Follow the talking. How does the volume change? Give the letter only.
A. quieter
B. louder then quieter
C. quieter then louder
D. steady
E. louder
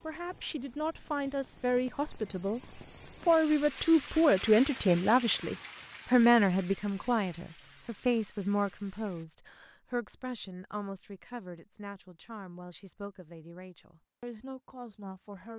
B.